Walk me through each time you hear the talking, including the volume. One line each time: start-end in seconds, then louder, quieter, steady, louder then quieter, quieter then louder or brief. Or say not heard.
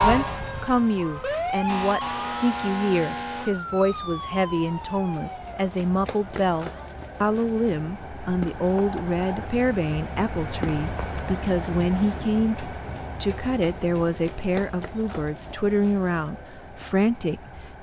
0.0-17.7 steady.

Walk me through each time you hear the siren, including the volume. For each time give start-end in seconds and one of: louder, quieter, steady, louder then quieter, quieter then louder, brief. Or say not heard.
0.0-7.0 quieter.